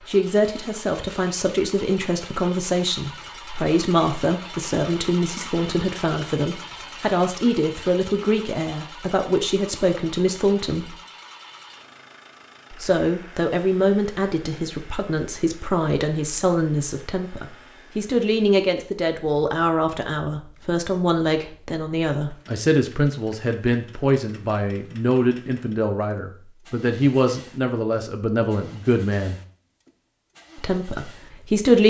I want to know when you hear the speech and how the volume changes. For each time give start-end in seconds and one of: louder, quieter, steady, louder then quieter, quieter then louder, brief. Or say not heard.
0.1-10.9 steady
12.7-29.4 steady
30.6-31.8 brief.